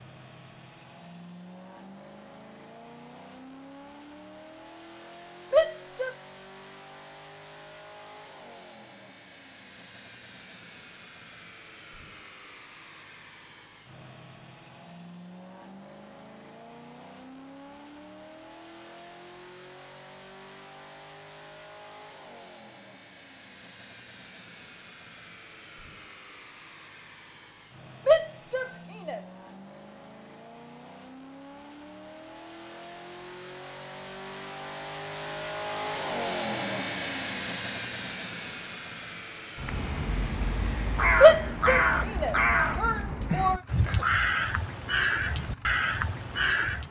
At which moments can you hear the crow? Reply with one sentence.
The crow can be heard from 39.5 to 46.8 s.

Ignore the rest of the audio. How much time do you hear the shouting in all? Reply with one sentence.
You can hear the shouting for 4 seconds altogether.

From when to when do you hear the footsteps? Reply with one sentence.
You can't hear the footsteps here.